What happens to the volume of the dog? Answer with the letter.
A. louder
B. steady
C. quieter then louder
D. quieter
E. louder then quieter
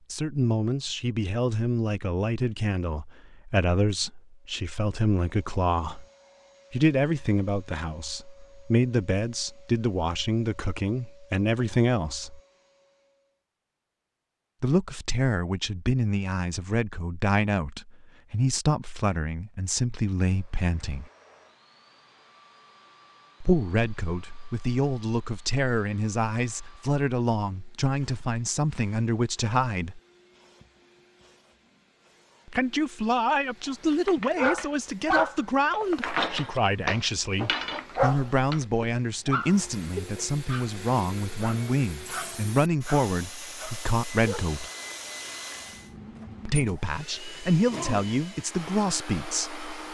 D.